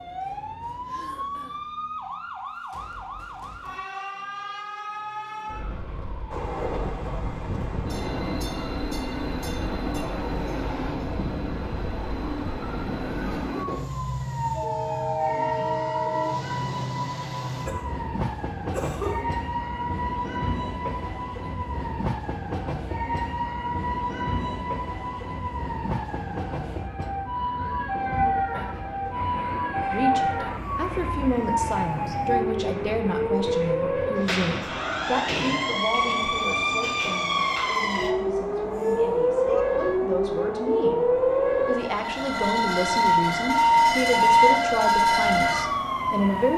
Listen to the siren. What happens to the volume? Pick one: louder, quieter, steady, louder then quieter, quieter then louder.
louder.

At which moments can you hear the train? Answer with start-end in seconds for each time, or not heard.
6.3-46.5.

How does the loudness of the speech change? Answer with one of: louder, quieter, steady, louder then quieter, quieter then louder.
quieter then louder.